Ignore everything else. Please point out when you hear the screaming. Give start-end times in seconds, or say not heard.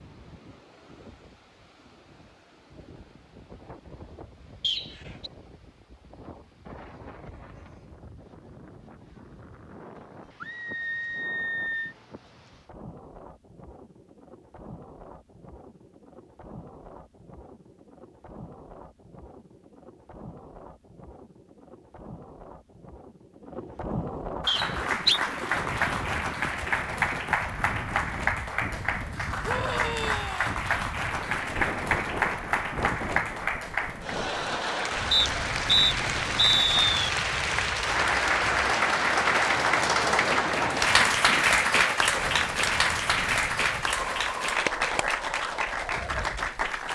10.4-11.9, 29.4-30.5.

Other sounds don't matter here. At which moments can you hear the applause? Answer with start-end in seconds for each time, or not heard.
24.4-46.9.